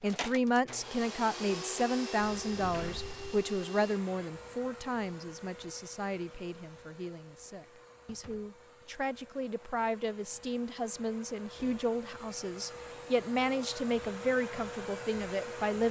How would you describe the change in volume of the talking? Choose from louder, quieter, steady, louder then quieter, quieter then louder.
quieter then louder.